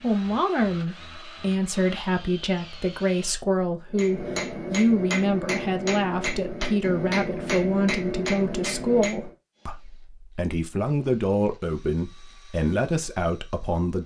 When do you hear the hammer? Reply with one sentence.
The hammer can be heard from 3.9 to 9.3 s.